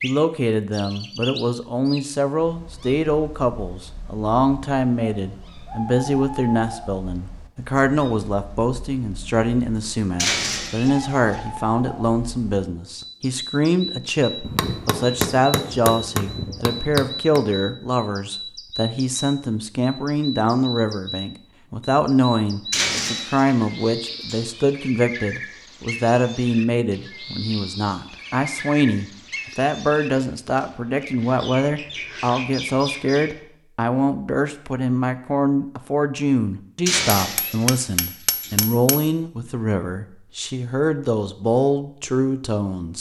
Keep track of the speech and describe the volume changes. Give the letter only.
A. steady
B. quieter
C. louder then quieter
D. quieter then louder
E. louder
A.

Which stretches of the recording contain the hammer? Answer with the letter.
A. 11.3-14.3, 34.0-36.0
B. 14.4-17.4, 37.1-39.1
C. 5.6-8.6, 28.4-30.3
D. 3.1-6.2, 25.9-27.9
B.